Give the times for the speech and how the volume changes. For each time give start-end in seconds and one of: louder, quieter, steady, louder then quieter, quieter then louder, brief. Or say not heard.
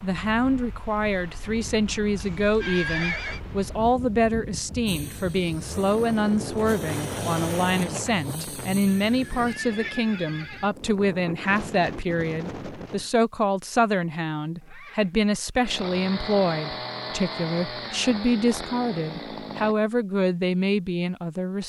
0.0-21.6 steady.